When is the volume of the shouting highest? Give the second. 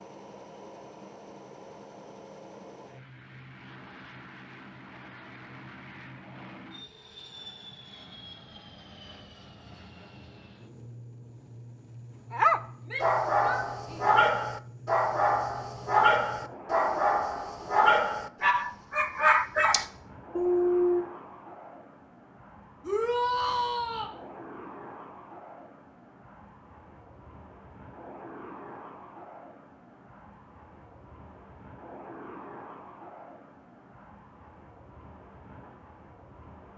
23 s.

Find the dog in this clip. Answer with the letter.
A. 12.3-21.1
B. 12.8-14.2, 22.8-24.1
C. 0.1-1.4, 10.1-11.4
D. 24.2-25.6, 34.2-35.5
A.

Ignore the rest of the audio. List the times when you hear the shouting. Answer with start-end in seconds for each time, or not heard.
12.8-14.2, 22.8-24.1.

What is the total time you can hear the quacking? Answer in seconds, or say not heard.
not heard.